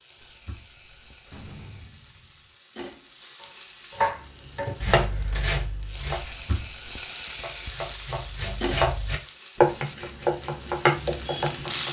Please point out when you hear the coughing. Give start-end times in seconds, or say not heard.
0.2-1.4, 6.2-7.0.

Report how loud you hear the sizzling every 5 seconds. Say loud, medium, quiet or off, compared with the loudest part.
quiet, medium, loud.